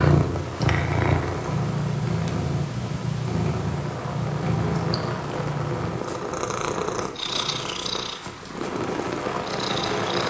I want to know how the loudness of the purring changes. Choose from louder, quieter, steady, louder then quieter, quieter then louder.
quieter.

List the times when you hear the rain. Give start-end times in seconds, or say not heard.
0.2-10.2.